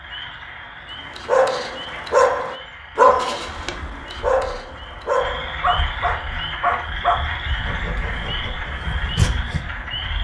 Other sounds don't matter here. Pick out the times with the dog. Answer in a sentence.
The dog can be heard from 1.1 to 9.6 s.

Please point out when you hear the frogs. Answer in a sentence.
You can hear the frogs from 0.0 to 10.1 s.